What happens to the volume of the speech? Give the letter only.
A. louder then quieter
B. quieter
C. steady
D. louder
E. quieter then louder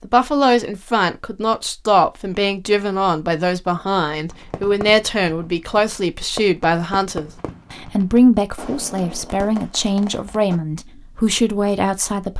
C.